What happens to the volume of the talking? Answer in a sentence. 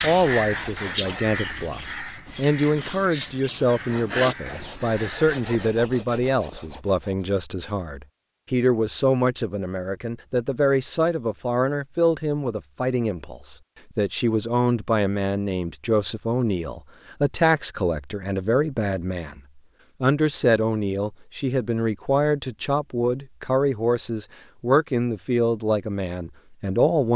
The volume of the talking stays about the same.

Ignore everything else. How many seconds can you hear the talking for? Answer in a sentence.
The talking can be heard for 27 seconds in total.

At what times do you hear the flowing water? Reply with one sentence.
You can't hear the flowing water here.